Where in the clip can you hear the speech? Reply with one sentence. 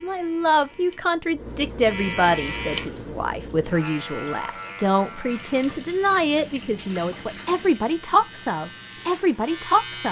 You can hear the speech from 0.0 to 10.0 s.